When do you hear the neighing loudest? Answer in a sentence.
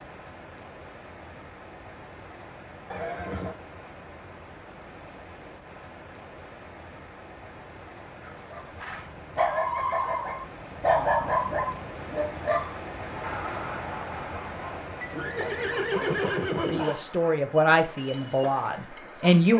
The loudest moment of the neighing is at 16 seconds.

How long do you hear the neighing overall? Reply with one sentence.
You can hear the neighing for 3 seconds altogether.